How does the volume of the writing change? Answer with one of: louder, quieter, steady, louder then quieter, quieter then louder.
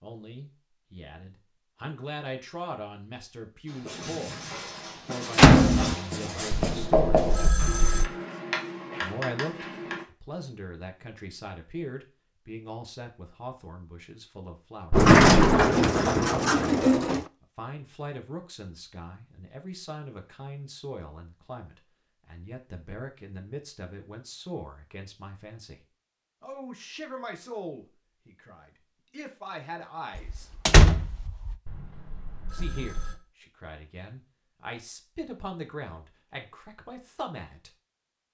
louder then quieter.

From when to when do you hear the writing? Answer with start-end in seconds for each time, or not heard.
3.6-10.1.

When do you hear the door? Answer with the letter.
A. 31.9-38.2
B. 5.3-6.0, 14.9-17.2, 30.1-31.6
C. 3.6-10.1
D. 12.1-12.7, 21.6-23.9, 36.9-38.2
B.